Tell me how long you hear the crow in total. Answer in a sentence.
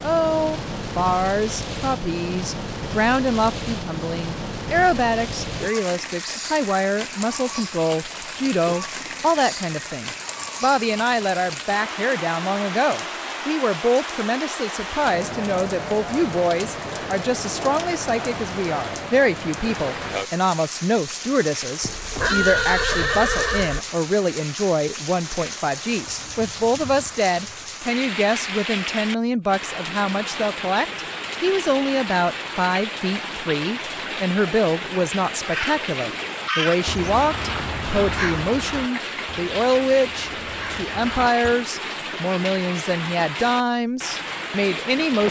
The crow can be heard for 6 seconds in total.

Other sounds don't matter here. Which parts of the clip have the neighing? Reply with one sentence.
The neighing can be heard from 21.8 to 23.8 s.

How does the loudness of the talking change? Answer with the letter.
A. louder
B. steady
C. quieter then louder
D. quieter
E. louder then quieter
B.